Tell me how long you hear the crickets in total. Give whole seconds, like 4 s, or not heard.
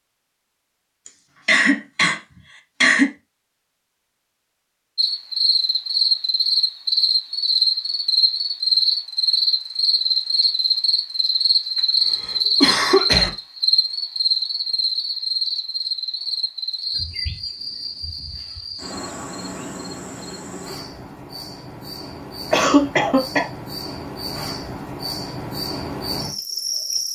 22 s.